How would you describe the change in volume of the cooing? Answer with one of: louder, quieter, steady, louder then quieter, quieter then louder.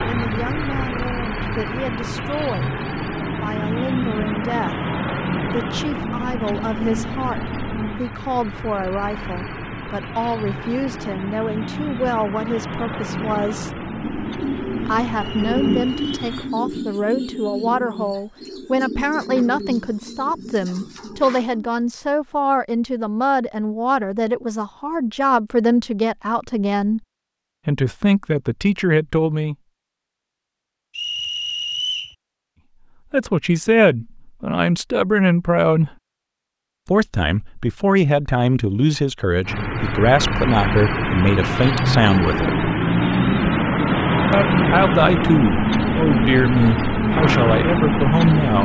quieter.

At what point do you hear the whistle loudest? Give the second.
32 s.